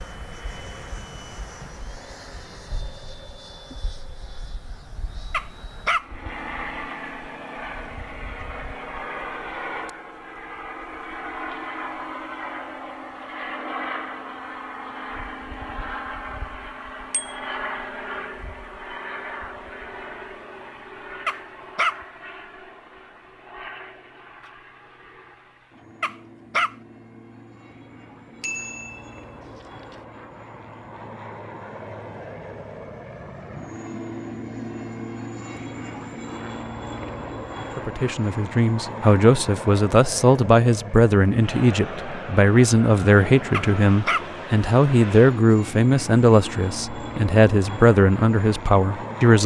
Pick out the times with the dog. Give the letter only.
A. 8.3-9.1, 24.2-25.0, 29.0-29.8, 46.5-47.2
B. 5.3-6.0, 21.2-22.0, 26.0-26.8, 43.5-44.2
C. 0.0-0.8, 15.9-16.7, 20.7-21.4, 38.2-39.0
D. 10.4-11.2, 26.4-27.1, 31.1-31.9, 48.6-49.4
B.